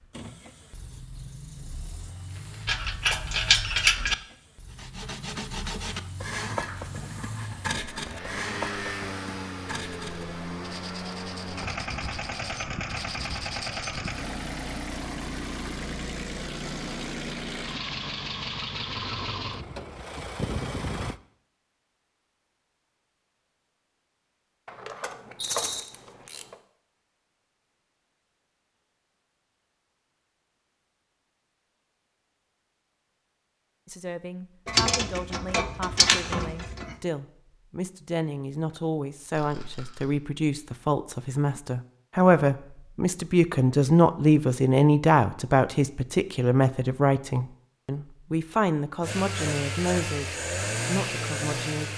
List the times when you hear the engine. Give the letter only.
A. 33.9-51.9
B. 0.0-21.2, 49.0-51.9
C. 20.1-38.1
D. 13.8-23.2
B.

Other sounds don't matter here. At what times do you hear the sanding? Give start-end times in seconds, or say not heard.
4.7-14.2.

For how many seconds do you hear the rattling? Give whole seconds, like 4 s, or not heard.
2 s.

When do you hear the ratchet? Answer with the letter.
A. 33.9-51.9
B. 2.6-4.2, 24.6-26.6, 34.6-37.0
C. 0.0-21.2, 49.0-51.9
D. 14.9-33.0
B.